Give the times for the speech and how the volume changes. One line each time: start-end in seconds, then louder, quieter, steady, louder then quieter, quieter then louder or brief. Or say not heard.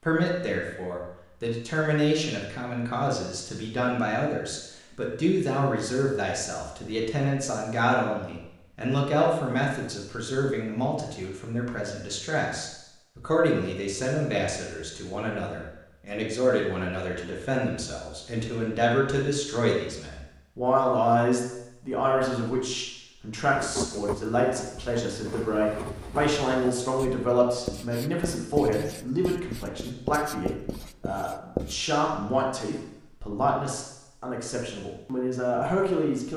0.1-36.3 steady.